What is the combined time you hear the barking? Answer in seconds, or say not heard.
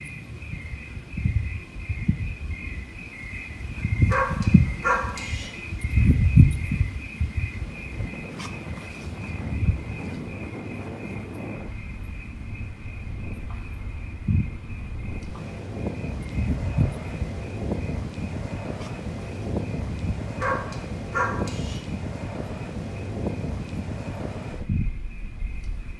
3 s.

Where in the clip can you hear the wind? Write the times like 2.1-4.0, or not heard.
7.5-25.9.